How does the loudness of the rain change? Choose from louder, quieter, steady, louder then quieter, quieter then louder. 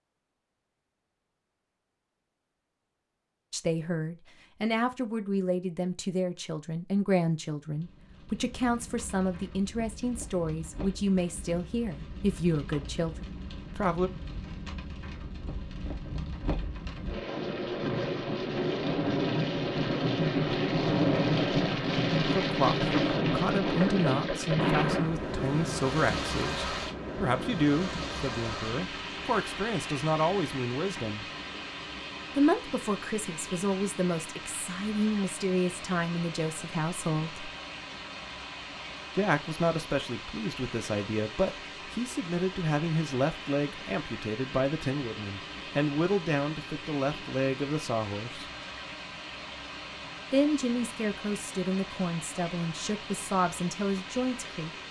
louder then quieter.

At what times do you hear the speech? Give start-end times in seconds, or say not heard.
3.5-14.1, 22.3-31.2, 32.4-37.5, 39.1-48.5, 50.3-54.7.